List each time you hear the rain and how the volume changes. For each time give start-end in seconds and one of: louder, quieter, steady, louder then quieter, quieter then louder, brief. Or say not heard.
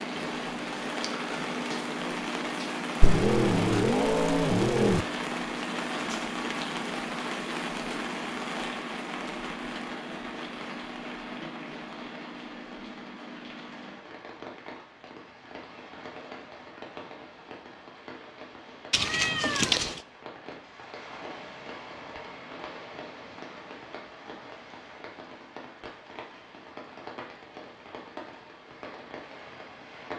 0.0-30.1 quieter.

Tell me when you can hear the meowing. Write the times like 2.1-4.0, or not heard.
3.0-5.0, 18.9-20.0.